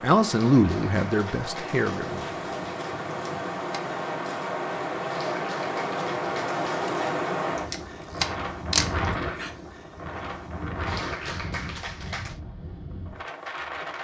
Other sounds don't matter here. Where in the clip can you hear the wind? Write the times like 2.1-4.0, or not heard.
0.0-13.9.